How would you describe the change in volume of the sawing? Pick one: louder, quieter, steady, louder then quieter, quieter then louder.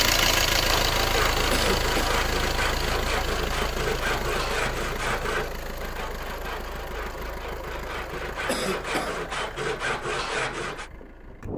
quieter then louder.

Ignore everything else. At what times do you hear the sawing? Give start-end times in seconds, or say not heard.
0.7-10.9.